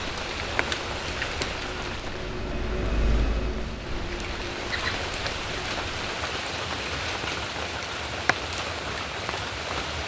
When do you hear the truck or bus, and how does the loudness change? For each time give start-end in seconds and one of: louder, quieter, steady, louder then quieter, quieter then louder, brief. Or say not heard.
0.0-6.0 louder then quieter.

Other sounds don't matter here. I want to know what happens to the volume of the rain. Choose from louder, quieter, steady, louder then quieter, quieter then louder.
quieter then louder.